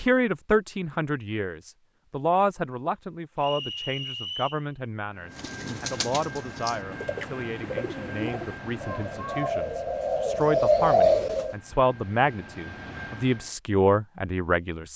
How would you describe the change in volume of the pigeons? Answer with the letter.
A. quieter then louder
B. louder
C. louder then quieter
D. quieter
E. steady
B.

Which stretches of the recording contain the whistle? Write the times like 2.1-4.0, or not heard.
3.4-4.7.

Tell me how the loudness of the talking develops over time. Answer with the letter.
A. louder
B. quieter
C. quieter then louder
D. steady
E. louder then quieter
C.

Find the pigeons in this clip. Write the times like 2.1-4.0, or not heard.
5.3-11.6.